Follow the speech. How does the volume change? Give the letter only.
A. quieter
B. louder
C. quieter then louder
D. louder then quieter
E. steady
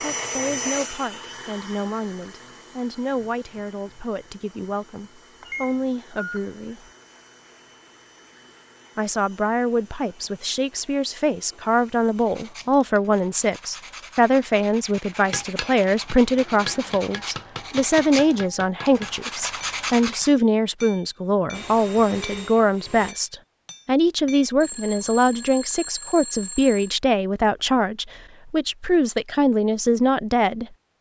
B.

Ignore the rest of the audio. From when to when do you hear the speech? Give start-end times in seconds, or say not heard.
0.0-6.9, 8.9-30.6.